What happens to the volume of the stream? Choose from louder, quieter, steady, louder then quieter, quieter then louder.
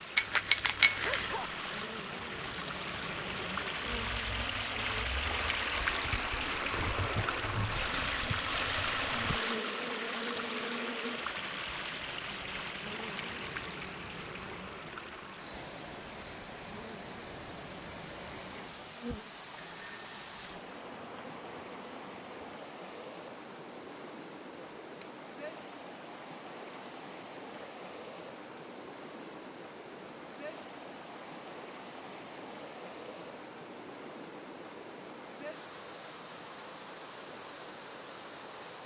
quieter.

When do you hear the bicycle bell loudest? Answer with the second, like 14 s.
1 s.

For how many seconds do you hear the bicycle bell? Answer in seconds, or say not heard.
2 s.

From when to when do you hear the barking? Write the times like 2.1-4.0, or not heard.
1.0-1.6.